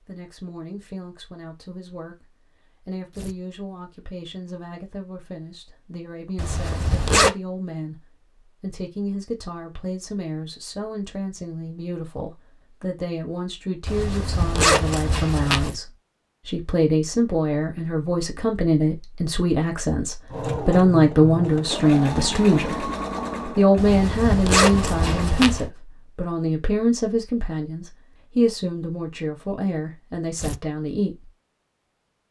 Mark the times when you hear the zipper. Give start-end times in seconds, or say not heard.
6.3-7.3, 13.8-15.7, 23.8-25.7.